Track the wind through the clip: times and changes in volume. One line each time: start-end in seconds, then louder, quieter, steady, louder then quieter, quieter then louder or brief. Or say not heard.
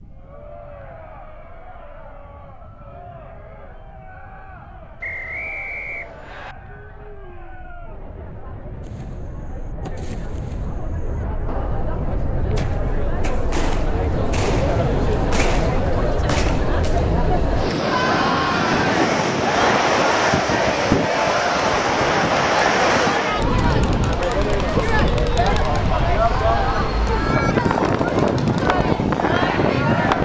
0.0-30.2 louder.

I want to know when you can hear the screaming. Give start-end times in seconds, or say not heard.
not heard.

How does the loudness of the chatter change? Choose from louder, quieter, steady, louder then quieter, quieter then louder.
louder.